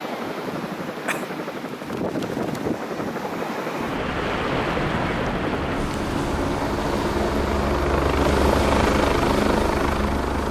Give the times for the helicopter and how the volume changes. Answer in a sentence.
The helicopter can be heard from 0.0 to 10.4 s, getting louder.